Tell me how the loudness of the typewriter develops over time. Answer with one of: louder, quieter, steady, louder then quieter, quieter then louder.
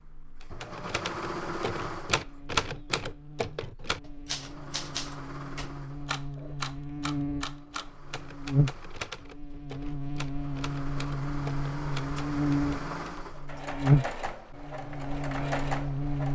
quieter.